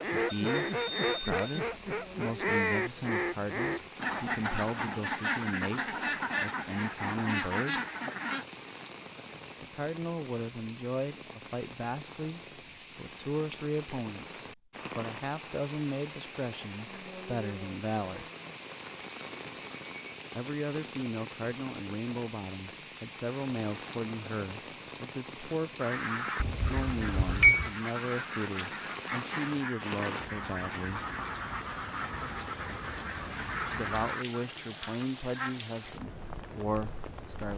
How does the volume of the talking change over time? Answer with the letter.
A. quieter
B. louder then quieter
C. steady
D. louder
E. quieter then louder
C.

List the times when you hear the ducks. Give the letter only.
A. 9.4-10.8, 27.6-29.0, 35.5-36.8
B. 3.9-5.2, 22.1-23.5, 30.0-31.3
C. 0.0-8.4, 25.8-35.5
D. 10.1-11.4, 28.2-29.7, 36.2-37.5
C.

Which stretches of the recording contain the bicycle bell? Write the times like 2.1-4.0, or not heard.
0.3-1.6, 18.4-19.9, 26.4-27.7.